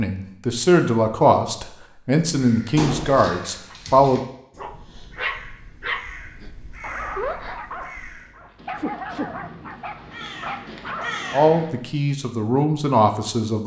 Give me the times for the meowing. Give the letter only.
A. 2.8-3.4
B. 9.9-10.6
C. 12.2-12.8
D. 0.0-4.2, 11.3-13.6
A.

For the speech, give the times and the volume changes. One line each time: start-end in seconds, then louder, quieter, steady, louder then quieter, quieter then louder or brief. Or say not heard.
0.0-4.2 steady
11.3-13.6 brief.